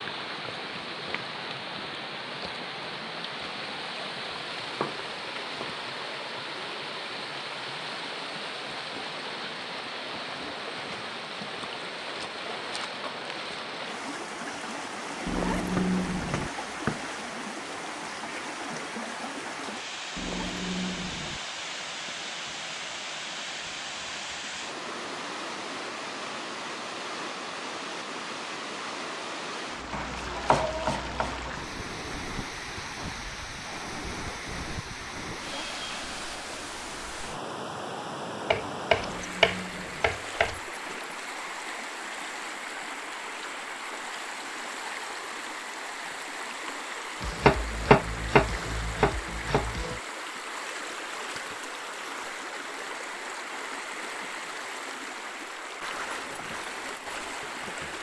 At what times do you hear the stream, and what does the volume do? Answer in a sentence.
You can hear the stream from 0.0 to 57.9 s, at a steady volume.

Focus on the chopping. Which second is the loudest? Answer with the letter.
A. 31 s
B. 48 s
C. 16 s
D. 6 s
B.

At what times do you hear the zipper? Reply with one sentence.
The zipper can be heard from 15.2 to 16.5 s, from 20.1 to 21.4 s and from 38.9 to 40.1 s.